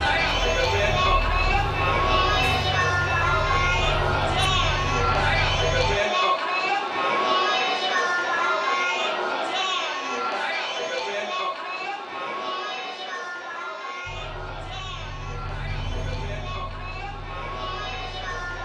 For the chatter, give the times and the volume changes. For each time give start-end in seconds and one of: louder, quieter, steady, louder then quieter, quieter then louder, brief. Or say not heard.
0.0-18.6 quieter.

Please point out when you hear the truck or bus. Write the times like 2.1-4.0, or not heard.
0.0-6.0, 14.0-18.6.